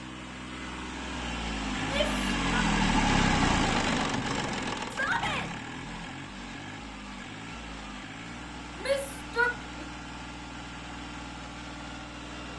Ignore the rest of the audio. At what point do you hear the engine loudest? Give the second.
3 s.